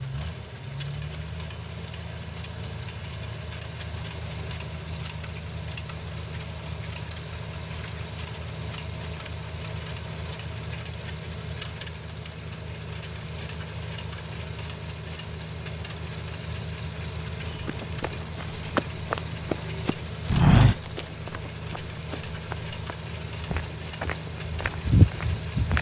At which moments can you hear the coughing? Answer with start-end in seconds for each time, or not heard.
not heard.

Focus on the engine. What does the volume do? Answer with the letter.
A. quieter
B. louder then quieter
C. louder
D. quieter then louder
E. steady
E.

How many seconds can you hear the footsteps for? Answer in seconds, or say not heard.
8 s.